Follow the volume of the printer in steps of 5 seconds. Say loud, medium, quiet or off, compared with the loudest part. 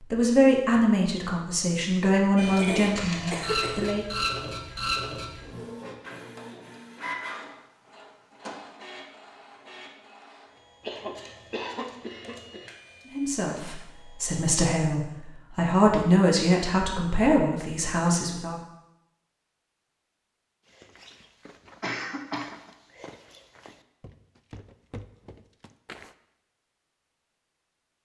loud, medium, quiet, off, off, off.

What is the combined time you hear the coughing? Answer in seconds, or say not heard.
4 s.